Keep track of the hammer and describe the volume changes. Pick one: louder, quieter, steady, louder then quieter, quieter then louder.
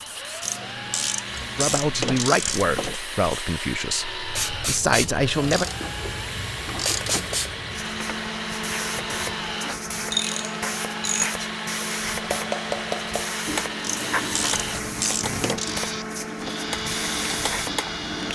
quieter.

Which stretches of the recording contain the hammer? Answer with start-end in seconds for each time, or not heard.
12.2-18.2.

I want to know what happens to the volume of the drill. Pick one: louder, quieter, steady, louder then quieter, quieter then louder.
steady.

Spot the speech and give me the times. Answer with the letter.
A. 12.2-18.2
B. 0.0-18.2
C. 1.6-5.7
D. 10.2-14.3
C.